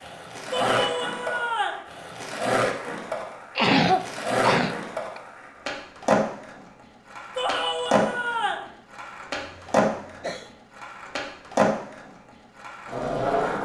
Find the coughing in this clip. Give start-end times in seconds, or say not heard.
3.5-5.2, 9.3-10.5.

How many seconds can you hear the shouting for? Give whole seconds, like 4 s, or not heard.
3 s.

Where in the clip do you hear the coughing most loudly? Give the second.
4 s.